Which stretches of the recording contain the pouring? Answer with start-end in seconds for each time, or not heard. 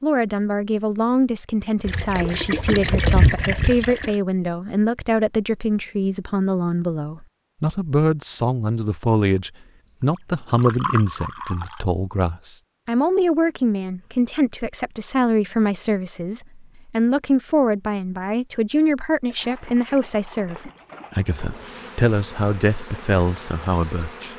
1.9-4.2, 10.2-11.8, 19.3-21.8.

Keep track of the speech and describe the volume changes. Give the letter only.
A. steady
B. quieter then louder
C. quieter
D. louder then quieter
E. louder
A.